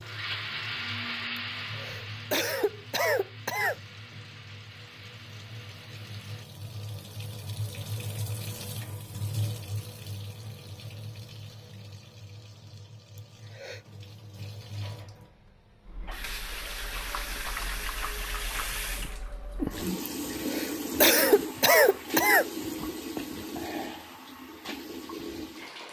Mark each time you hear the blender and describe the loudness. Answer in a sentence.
You can hear the blender from 0.0 to 6.5 s, getting quieter.